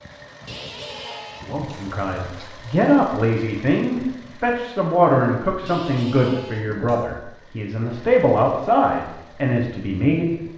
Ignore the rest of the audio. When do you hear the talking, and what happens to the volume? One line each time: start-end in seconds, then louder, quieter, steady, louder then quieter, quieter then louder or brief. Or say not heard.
1.4-10.3 steady.